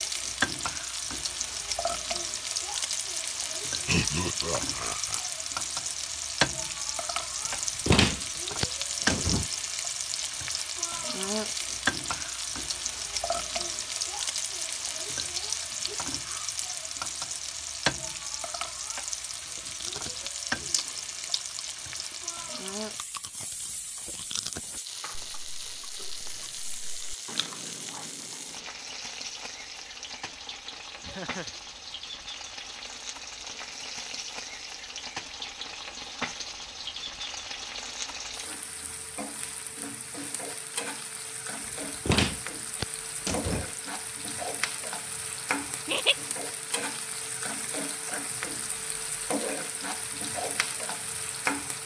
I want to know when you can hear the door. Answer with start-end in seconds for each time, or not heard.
7.8-9.4, 42.0-43.8.